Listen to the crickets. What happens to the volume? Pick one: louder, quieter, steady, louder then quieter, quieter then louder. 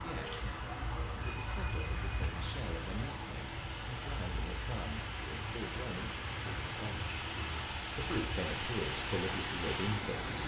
quieter.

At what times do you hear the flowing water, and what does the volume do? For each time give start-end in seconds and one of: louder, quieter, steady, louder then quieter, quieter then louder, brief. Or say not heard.
0.0-10.4 louder.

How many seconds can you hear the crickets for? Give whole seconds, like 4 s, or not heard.
10 s.